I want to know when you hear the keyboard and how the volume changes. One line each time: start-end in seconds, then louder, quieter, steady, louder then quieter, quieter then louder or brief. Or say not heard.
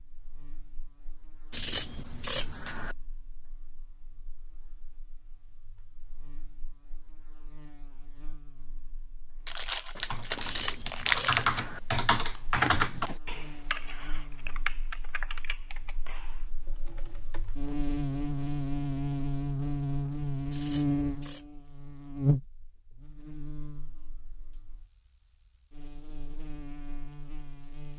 9.3-17.5 louder then quieter.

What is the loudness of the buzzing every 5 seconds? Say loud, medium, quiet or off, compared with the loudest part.
quiet, quiet, quiet, loud, loud, quiet.